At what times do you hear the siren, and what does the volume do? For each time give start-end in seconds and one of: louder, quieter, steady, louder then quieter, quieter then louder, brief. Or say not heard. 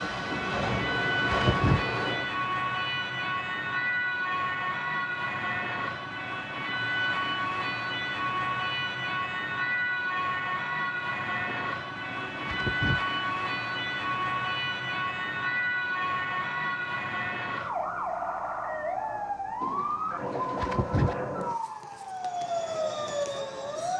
0.0-23.9 steady.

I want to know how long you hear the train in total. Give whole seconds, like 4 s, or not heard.
2 s.